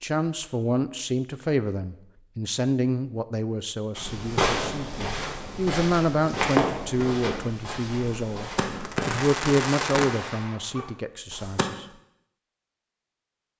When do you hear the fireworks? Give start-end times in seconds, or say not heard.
4.2-11.7.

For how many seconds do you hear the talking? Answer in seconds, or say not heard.
12 s.